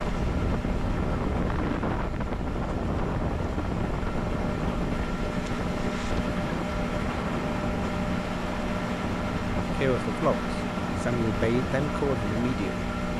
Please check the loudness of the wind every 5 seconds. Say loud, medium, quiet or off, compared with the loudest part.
loud, loud, medium.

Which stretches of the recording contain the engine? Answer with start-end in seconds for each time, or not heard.
0.0-13.1.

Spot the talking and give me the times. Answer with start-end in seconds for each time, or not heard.
9.7-12.8.